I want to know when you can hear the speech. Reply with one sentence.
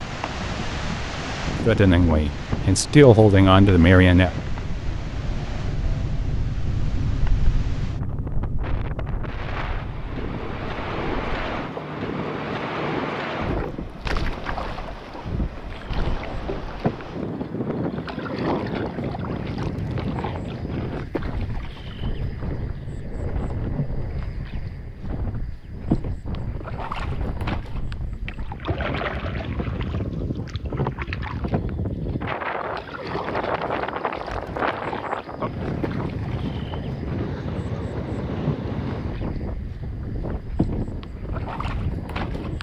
The speech can be heard from 1.6 to 4.3 s.